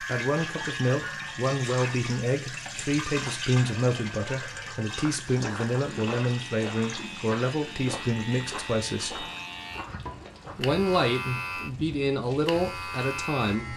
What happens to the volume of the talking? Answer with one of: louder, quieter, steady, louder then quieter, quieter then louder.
steady.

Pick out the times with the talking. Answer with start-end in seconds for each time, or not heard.
0.0-9.2, 10.6-13.7.